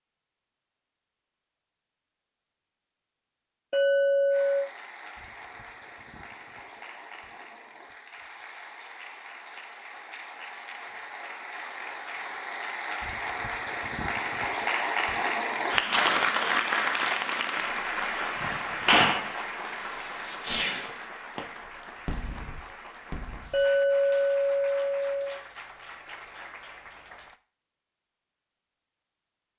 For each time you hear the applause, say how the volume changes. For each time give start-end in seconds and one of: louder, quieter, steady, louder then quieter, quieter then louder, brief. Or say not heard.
4.3-27.4 louder then quieter.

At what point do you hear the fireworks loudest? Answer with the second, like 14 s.
19 s.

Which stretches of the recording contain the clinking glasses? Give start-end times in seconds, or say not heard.
3.7-4.7, 23.5-25.4.